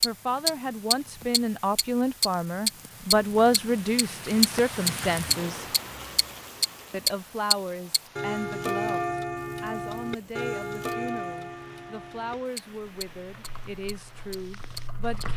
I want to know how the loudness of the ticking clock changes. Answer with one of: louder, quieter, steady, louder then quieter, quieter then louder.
quieter.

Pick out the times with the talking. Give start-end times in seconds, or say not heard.
0.0-5.7, 6.9-15.3.